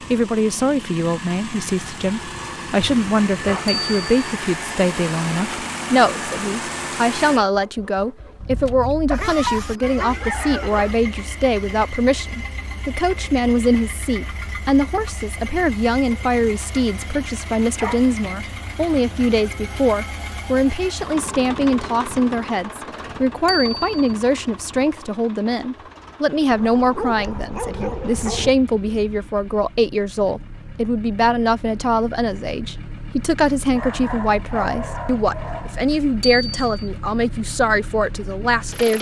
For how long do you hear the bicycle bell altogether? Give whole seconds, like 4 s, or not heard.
2 s.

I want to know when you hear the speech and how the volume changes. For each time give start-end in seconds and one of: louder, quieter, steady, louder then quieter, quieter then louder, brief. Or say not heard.
0.0-38.9 steady.